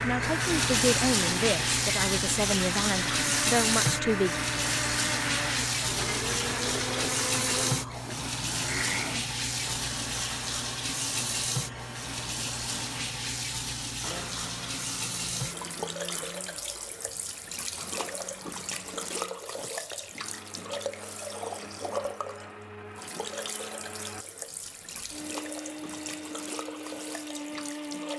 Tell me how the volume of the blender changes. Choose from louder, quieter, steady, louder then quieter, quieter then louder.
quieter then louder.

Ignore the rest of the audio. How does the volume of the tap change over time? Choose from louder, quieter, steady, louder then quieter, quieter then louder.
quieter.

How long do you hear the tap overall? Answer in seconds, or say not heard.
28 s.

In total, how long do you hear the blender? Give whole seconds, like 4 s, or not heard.
28 s.